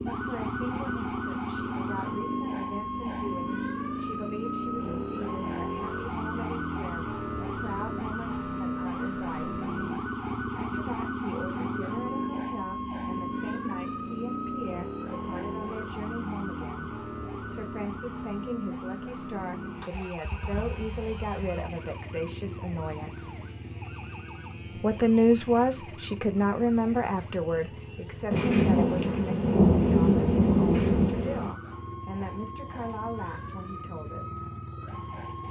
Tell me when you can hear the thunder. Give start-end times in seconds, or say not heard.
28.3-31.6.